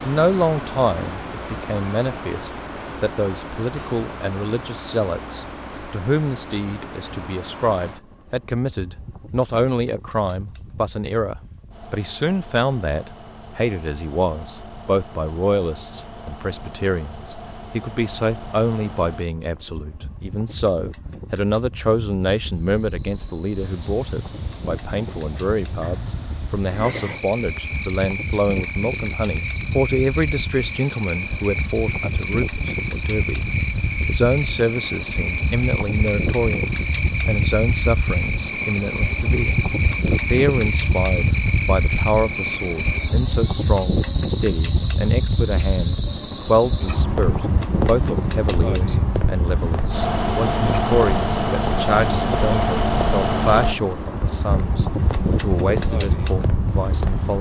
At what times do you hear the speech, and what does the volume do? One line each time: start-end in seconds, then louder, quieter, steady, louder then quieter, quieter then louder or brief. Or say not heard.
0.1-57.3 steady.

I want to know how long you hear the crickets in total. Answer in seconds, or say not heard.
35 s.